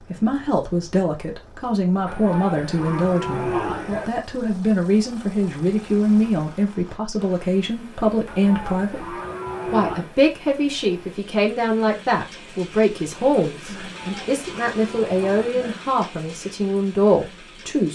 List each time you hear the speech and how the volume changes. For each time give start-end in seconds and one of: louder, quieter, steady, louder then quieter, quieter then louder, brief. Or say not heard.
0.1-17.9 steady.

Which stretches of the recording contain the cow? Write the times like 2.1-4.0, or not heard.
2.0-4.1, 8.2-10.1, 13.8-15.8.